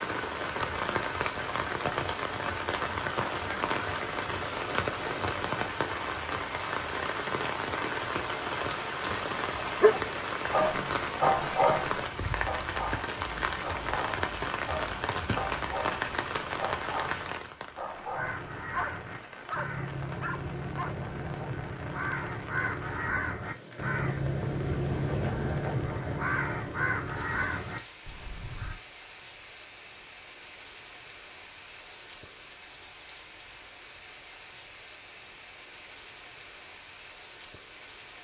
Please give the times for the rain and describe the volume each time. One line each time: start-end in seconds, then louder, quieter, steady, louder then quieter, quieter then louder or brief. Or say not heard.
0.0-38.2 quieter.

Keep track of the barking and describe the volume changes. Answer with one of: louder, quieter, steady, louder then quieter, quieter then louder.
quieter.